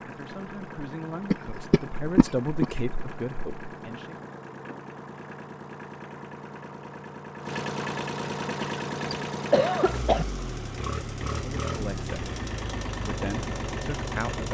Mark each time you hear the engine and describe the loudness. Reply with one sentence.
The engine can be heard from 0.0 to 14.4 s, getting louder.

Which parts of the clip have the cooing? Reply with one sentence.
You can't hear the cooing here.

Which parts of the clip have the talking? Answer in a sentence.
The talking can be heard from 0.0 to 4.2 s, from 11.2 to 12.2 s and from 13.0 to 14.4 s.